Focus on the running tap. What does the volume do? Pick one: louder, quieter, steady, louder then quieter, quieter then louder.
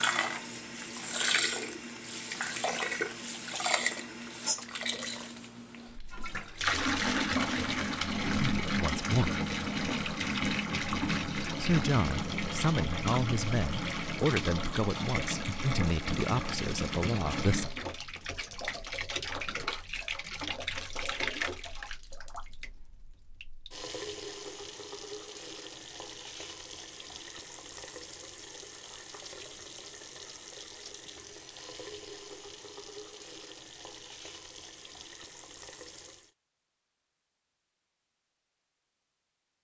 quieter.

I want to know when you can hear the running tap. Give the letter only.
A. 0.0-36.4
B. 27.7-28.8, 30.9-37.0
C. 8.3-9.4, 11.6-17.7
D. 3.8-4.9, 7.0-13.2
A.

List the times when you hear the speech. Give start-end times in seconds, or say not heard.
8.3-9.4, 11.6-17.7.